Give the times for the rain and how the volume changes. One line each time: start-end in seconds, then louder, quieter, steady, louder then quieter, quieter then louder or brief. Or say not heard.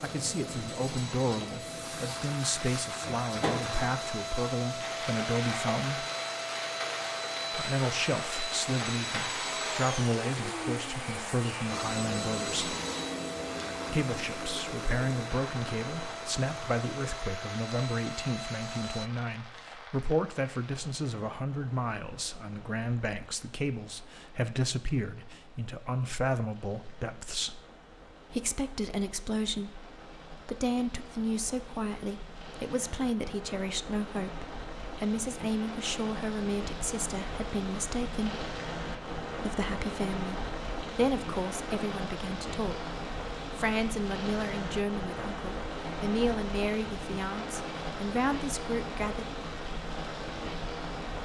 0.0-51.2 quieter then louder.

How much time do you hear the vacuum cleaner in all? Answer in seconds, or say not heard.
19 s.